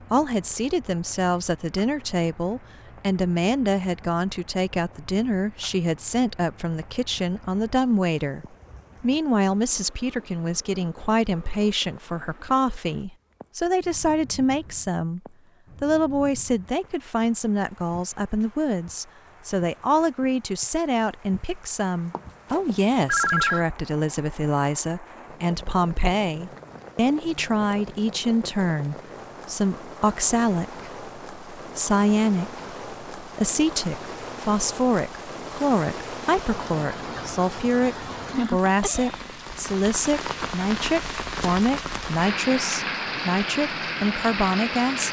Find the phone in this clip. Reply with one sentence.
The phone can be heard from 22.1 to 23.6 s.